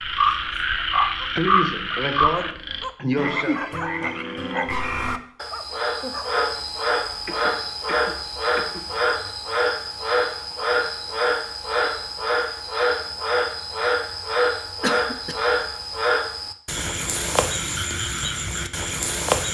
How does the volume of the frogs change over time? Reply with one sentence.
The loudness of the frogs stays about the same.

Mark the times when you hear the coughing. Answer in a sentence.
The coughing can be heard from 1.4 to 3.6 s, from 7.2 to 8.8 s and from 14.8 to 15.3 s.